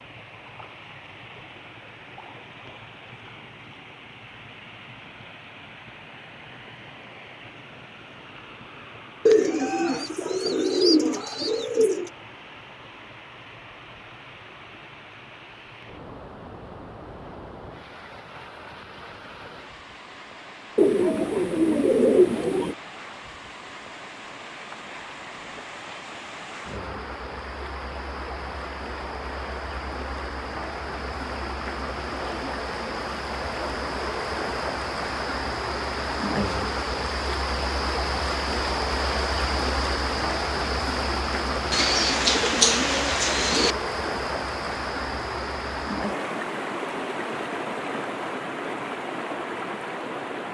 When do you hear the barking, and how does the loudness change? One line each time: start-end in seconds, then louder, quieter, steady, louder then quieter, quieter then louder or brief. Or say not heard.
not heard.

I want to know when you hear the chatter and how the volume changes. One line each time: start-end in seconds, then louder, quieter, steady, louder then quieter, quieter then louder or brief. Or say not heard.
not heard.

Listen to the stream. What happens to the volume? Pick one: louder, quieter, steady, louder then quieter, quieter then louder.
louder.